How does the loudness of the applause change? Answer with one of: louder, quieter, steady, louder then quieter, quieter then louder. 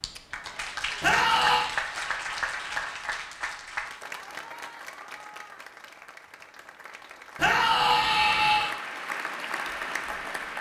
quieter then louder.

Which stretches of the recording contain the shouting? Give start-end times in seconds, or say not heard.
1.0-1.7, 7.3-8.8.